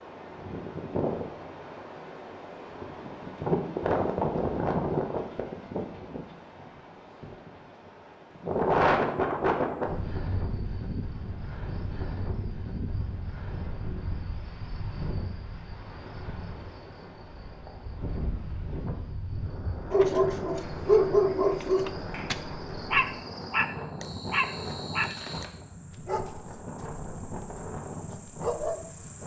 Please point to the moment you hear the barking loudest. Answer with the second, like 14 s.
21 s.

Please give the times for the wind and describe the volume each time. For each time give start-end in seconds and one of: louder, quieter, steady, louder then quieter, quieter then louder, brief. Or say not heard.
0.0-29.2 quieter.